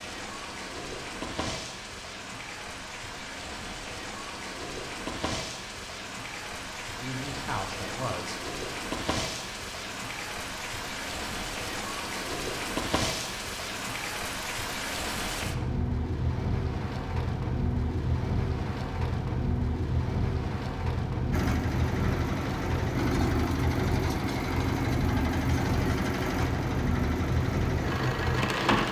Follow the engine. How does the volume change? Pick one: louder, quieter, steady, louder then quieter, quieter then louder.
steady.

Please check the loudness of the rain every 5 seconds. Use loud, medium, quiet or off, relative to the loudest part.
medium, medium, loud, loud, loud, loud.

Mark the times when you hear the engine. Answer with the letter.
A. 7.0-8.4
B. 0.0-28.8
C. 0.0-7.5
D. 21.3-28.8
D.